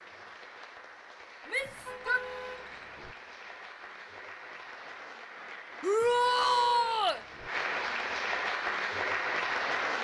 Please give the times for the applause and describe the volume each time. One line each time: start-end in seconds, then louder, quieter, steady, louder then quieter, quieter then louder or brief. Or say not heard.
0.0-9.9 louder.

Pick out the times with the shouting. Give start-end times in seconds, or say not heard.
1.4-2.2, 5.8-7.2.